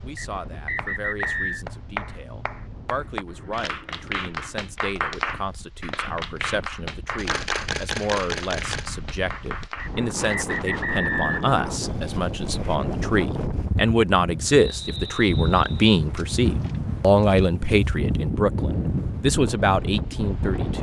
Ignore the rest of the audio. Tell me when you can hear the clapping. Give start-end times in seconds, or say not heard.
0.6-9.9.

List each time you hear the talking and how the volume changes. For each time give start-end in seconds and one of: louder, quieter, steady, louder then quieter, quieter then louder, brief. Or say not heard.
0.0-20.7 louder.